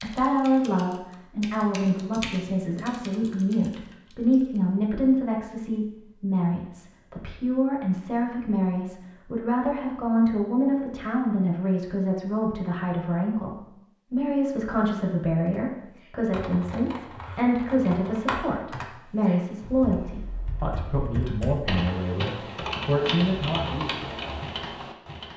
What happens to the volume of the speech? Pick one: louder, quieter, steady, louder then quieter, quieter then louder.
steady.